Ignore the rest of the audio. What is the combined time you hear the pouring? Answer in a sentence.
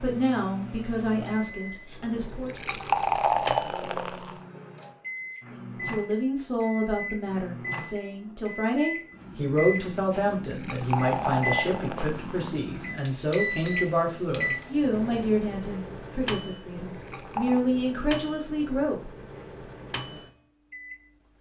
You can hear the pouring for 5 seconds altogether.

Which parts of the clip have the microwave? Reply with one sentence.
You can hear the microwave from 0.0 to 21.3 s.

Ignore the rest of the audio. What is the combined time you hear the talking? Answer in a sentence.
The talking can be heard for 16 seconds in total.